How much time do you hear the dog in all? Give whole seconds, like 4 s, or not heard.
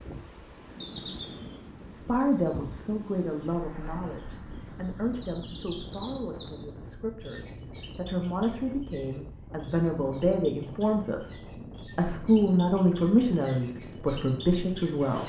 not heard.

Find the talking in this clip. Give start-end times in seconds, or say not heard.
1.9-15.2.